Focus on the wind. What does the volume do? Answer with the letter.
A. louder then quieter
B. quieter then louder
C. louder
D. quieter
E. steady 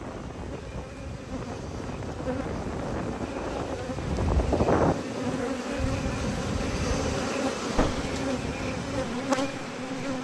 A.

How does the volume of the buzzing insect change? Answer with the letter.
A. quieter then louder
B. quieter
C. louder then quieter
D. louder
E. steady
D.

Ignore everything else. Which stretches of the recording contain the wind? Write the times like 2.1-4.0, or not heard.
0.0-10.2.